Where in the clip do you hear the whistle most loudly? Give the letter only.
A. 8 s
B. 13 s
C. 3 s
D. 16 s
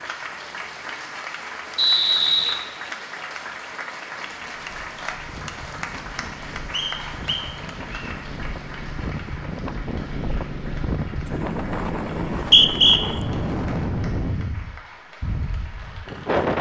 B.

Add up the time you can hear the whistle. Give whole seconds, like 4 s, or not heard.
3 s.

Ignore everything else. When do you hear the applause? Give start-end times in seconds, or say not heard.
0.0-16.5.